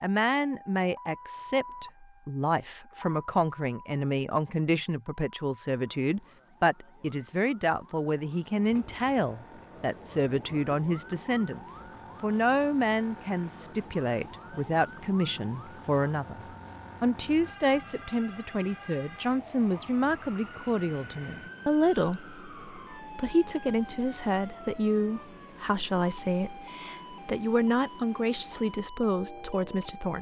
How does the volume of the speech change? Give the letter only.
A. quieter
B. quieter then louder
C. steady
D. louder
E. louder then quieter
C.